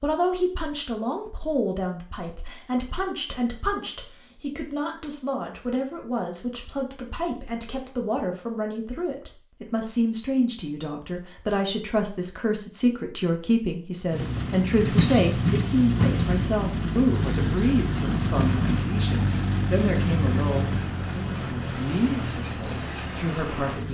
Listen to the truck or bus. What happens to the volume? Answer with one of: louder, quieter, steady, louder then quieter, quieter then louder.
quieter.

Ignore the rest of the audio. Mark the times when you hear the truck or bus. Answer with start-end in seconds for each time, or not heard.
14.1-23.8.